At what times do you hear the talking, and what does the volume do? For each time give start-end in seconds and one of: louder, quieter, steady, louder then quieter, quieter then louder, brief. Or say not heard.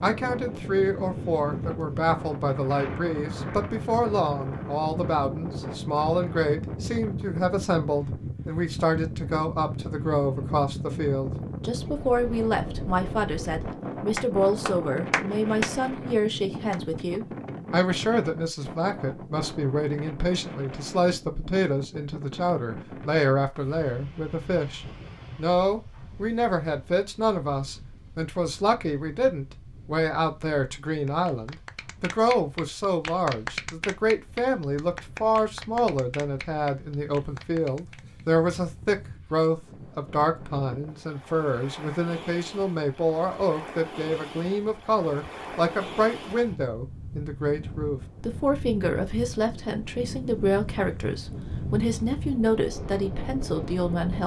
0.0-54.2 steady.